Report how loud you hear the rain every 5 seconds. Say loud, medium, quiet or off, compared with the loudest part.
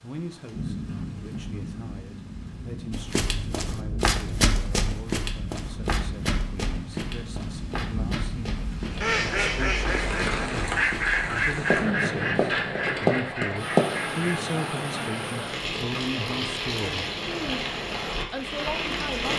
medium, medium, loud, loud.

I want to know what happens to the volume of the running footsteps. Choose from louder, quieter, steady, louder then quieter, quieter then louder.
quieter then louder.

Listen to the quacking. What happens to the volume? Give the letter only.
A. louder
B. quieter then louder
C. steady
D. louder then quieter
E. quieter
E.